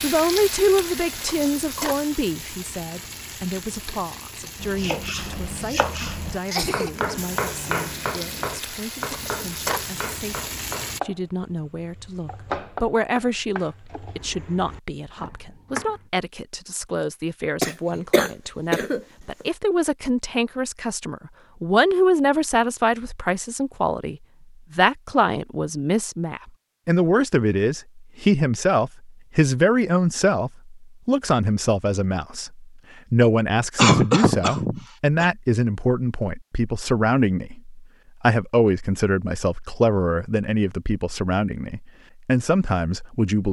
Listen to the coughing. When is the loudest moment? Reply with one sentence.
The loudest moment of the coughing is at 34 seconds.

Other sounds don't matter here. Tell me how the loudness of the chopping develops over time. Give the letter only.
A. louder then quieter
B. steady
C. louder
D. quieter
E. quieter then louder
D.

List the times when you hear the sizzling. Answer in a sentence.
The sizzling can be heard from 0.0 to 11.0 s.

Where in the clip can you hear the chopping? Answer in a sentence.
You can hear the chopping from 4.6 to 16.1 s.